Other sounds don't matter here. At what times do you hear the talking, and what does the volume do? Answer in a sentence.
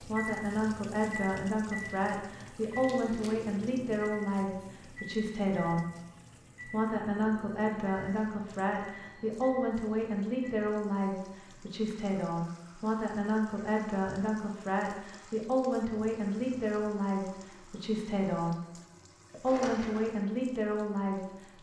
The talking can be heard from 0.0 to 5.9 s, at a steady volume; from 6.7 to 18.6 s, at a steady volume; and briefly from 19.3 to 21.2 s.